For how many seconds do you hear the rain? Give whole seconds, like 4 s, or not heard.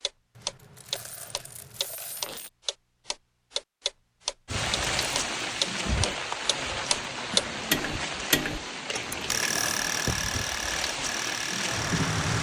8 s.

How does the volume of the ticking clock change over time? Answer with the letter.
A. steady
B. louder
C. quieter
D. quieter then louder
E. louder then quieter
E.